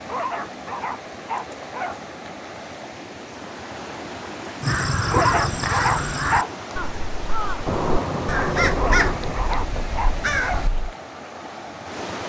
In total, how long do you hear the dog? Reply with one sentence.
The dog can be heard for 5 seconds in total.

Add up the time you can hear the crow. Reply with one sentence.
You can hear the crow for 6 seconds altogether.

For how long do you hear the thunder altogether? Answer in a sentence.
You can hear the thunder for 2 seconds altogether.